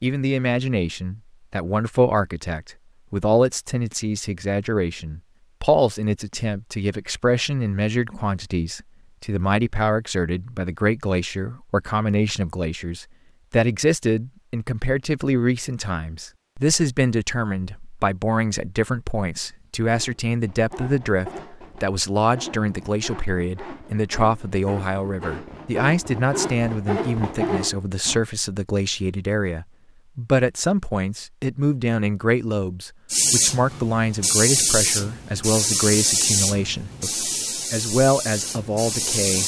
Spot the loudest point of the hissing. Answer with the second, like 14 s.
36 s.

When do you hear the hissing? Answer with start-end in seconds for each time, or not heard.
33.1-39.4.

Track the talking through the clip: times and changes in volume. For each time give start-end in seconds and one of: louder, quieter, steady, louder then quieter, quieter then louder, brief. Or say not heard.
0.0-39.4 steady.